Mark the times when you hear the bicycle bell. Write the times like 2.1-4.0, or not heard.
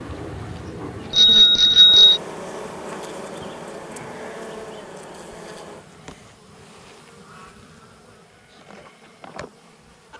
1.1-2.2.